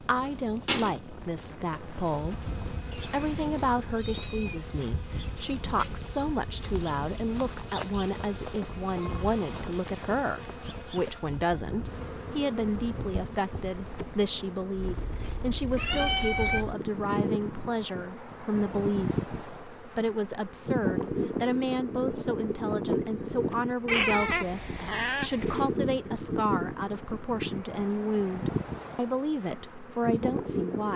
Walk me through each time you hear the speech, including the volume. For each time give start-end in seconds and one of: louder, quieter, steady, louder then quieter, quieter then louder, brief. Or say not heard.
0.0-30.9 steady.